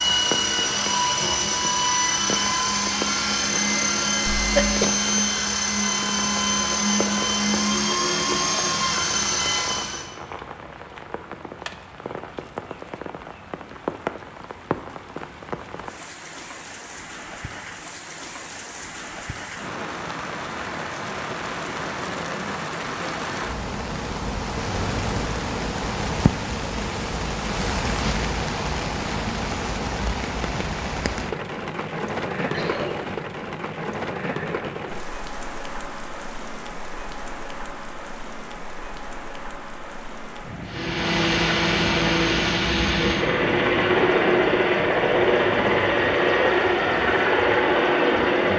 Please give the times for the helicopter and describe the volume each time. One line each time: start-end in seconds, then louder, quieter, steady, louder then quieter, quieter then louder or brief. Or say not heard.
0.0-10.1 steady
40.6-48.5 steady.